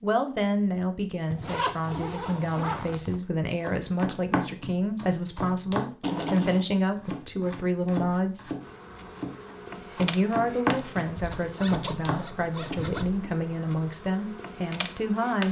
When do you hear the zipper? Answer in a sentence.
The zipper can be heard from 1.3 to 3.2 s, from 6.0 to 6.7 s and from 11.2 to 13.1 s.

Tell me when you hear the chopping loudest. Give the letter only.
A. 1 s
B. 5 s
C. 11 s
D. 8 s
C.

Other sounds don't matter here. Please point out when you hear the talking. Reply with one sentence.
The talking can be heard from 0.0 to 8.5 s and from 9.9 to 15.4 s.